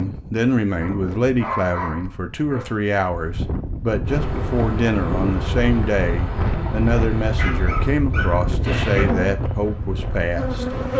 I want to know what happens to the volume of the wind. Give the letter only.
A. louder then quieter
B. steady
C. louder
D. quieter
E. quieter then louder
C.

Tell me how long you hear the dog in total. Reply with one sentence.
You can hear the dog for 4 seconds altogether.